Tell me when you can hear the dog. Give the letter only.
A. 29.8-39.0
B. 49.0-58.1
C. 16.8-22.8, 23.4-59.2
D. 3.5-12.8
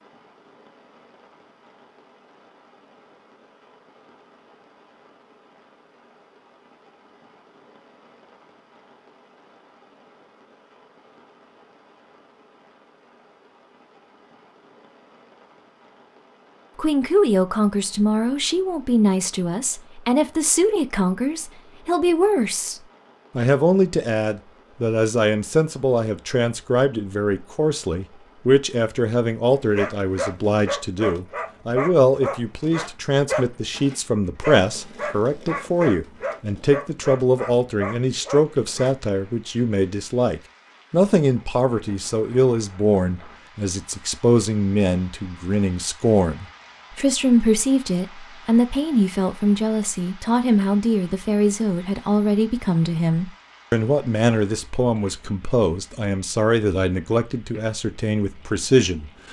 A.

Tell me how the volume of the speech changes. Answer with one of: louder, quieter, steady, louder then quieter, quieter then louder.
steady.